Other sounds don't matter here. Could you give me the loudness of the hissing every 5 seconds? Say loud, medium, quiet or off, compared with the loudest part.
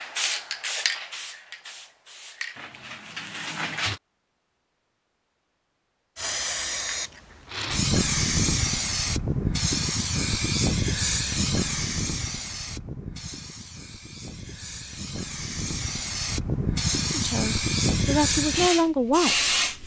medium, loud, loud, loud.